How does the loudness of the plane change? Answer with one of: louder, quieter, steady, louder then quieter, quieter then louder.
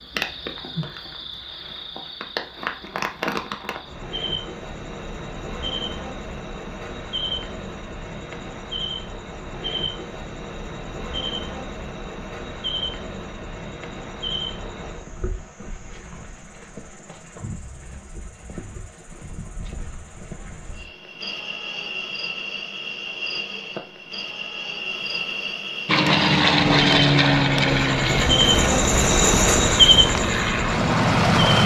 quieter then louder.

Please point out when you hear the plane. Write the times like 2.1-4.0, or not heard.
25.9-31.6.